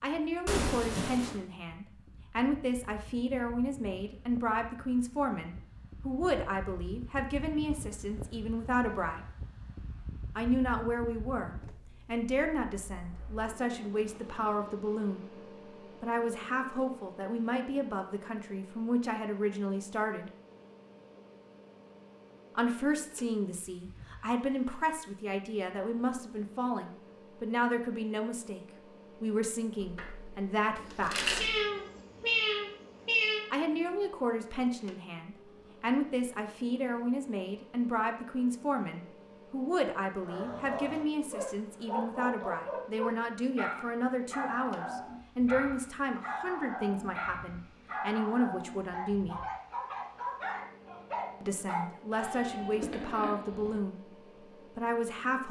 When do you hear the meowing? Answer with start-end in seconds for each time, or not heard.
0.5-1.4, 30.8-33.5, 52.1-53.8.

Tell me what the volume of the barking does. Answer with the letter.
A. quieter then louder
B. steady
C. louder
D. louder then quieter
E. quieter
B.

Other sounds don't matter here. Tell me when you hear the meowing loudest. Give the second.
32 s.